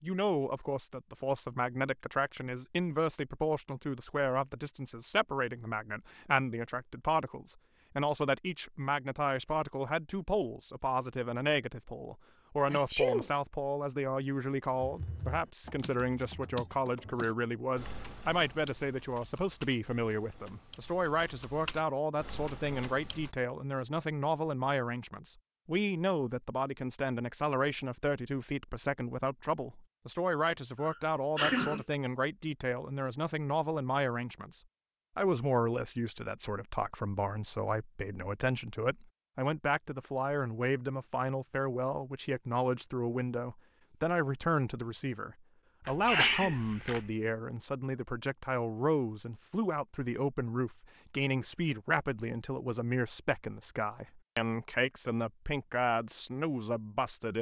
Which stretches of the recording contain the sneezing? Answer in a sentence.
You can hear the sneezing from 12.7 to 13.2 s, from 30.8 to 31.9 s and from 45.9 to 47.1 s.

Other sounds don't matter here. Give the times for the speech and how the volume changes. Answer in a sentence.
The speech can be heard from 0.0 to 57.3 s, at a steady volume.